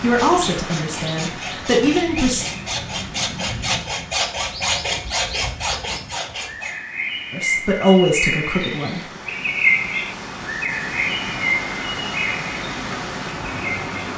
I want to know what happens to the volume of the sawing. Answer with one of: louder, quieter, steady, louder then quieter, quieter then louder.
louder.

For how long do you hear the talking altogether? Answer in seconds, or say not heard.
4 s.